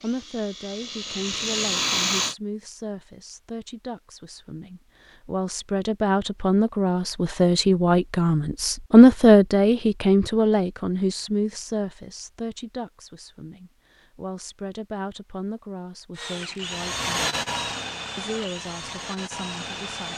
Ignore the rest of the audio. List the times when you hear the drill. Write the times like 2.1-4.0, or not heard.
0.0-2.4, 16.1-20.1.